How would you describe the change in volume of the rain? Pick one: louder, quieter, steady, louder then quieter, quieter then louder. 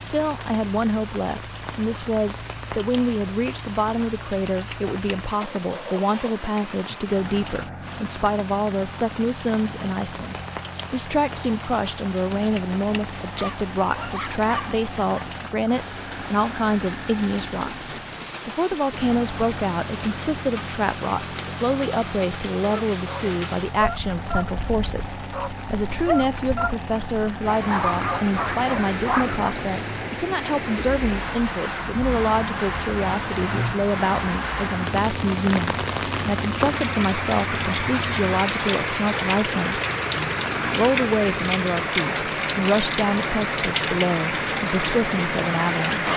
louder.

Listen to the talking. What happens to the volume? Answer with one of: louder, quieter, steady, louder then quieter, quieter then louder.
steady.